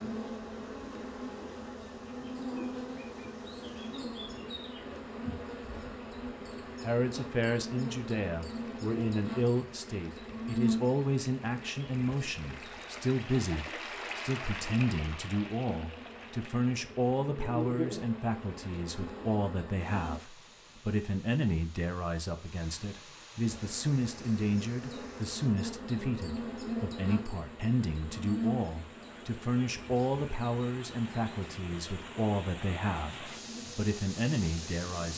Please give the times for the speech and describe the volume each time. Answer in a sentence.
You can hear the speech from 6.8 to 35.1 s, at a steady volume.